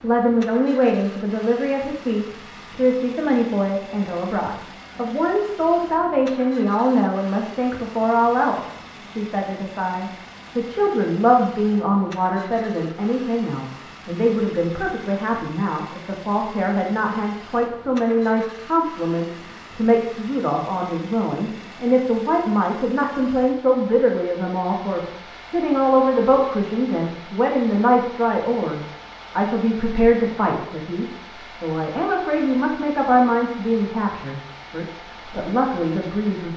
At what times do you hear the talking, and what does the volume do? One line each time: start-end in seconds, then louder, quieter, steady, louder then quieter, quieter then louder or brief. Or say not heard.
0.0-36.5 steady.